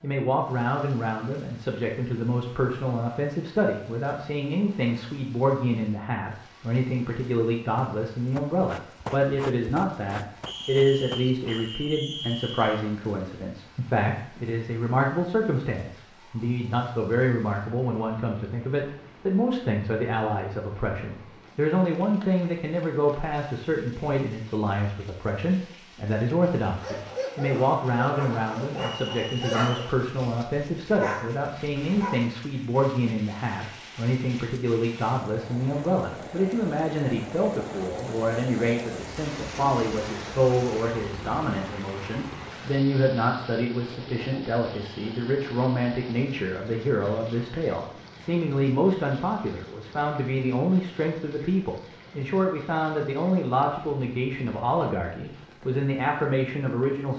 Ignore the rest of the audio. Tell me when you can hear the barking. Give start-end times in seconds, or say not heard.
26.8-32.2.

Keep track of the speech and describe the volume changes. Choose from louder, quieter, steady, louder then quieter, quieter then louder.
steady.